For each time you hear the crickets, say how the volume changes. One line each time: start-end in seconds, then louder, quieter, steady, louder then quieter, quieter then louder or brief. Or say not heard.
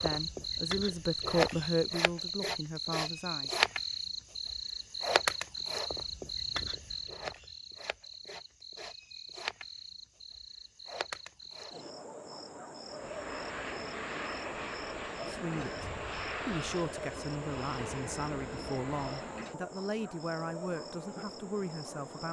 0.0-22.2 quieter.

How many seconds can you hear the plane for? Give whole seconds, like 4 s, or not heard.
7 s.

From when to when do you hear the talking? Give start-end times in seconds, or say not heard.
0.0-3.5, 15.2-22.2.